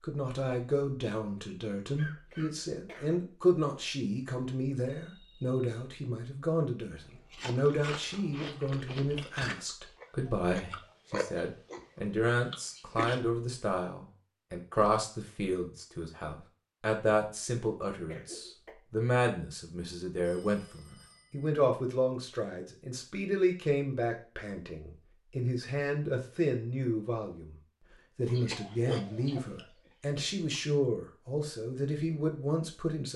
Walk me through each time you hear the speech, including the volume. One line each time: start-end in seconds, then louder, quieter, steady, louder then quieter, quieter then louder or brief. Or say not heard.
0.0-33.1 steady.